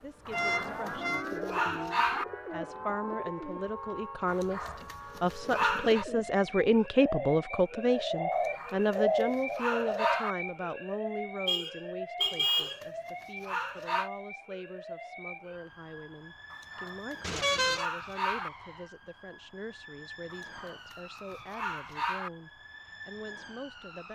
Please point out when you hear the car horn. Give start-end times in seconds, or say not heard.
0.3-1.2, 11.4-12.8, 17.2-17.9.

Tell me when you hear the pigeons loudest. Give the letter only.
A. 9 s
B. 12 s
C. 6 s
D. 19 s
A.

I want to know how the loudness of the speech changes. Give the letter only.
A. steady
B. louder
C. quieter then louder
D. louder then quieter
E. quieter
D.